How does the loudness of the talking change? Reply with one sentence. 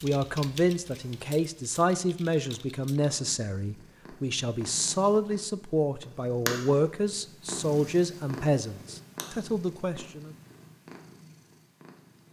The loudness of the talking stays about the same.